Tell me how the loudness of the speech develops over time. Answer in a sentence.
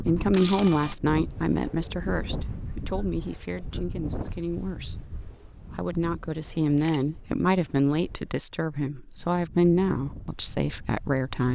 The loudness of the speech goes down, then up.